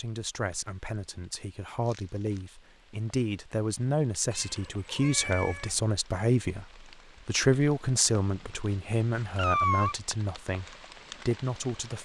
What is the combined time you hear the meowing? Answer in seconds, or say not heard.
3 s.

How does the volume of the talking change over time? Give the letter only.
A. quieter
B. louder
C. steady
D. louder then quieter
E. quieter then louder
D.